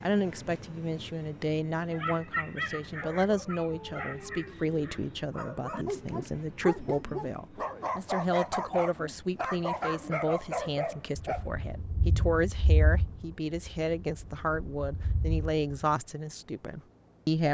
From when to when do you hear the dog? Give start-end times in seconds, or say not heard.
1.9-11.4.